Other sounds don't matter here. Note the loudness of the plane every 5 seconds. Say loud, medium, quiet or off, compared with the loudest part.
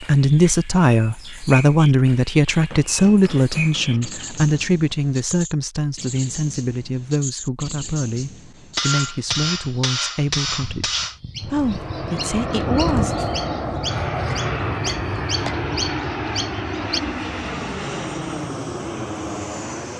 off, off, loud, loud.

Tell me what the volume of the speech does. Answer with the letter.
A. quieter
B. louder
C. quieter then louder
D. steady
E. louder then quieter
A.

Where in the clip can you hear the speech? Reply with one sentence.
You can hear the speech from 0.0 to 13.2 s.